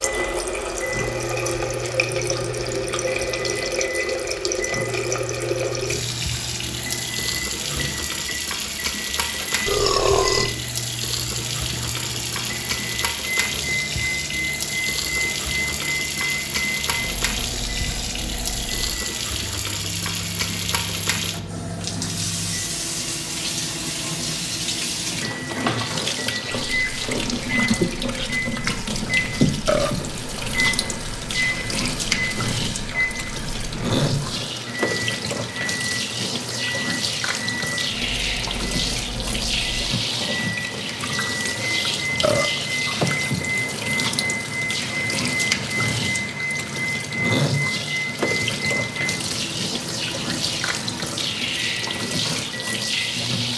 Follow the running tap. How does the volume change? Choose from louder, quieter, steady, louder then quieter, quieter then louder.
steady.